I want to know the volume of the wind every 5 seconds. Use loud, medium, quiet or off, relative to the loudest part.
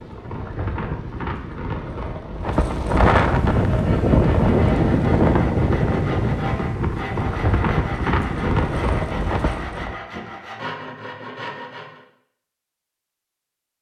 loud, loud, off.